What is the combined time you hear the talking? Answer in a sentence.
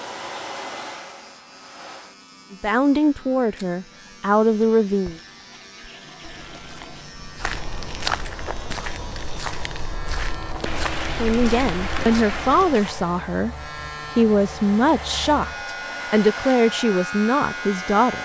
The talking can be heard for 10 seconds in total.